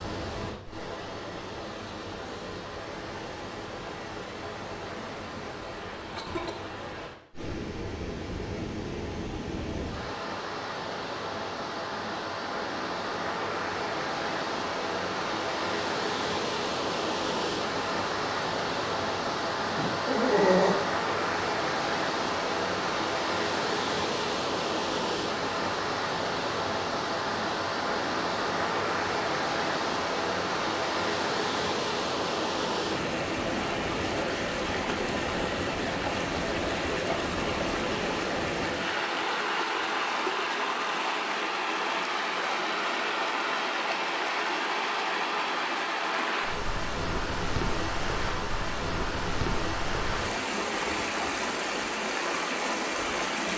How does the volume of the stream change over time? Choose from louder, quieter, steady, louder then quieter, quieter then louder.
louder.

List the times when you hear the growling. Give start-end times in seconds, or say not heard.
19.8-20.9.